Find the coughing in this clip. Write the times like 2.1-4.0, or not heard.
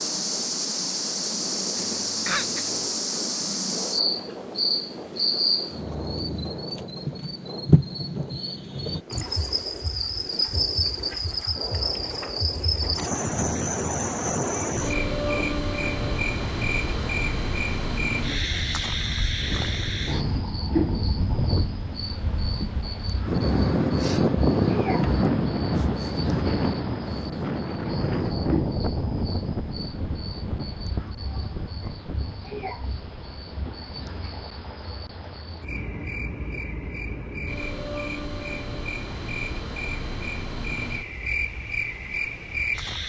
1.8-2.8.